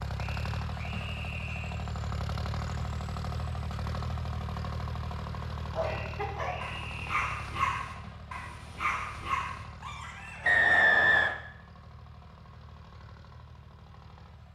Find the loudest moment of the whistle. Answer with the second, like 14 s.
11 s.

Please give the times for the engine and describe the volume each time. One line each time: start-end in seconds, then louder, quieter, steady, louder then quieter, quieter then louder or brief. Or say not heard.
0.0-14.5 quieter.